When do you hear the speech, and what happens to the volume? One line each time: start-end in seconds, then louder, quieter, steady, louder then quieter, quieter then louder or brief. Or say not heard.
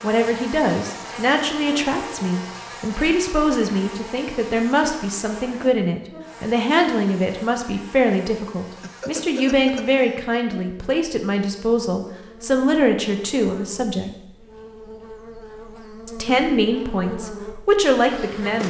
0.0-14.1 steady
16.1-18.6 brief.